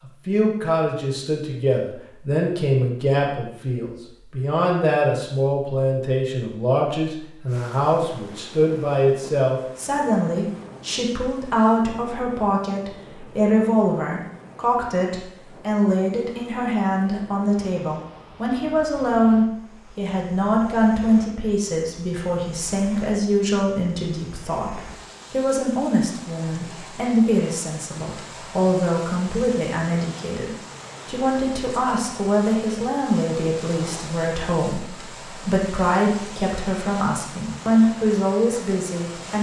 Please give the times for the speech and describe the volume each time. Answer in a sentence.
You can hear the speech from 0.2 to 39.3 s, at a steady volume.